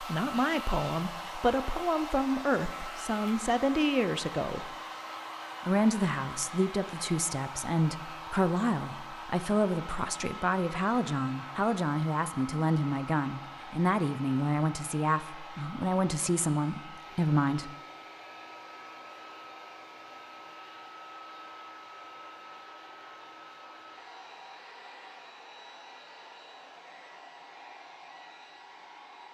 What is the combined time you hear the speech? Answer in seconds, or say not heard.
17 s.